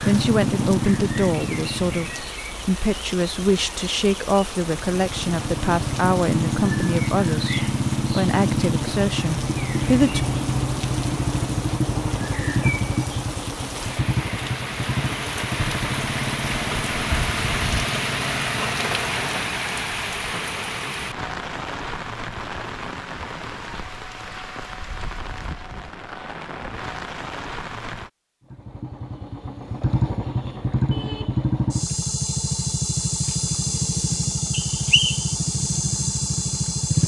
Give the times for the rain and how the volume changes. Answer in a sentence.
You can hear the rain from 0.0 to 28.1 s, getting louder then quieter.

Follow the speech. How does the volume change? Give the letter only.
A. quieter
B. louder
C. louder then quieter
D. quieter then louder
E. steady
E.